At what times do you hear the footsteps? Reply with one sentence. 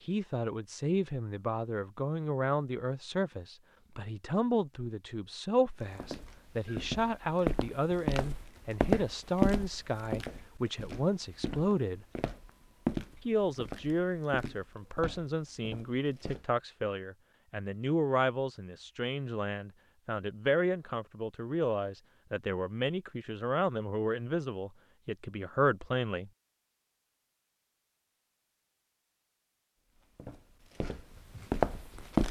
The footsteps can be heard from 5.8 to 16.4 s and from 29.9 to 32.2 s.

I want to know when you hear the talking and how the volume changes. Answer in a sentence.
You can hear the talking from 0.1 to 12.1 s, at a steady volume; and from 13.2 to 26.3 s, at a steady volume.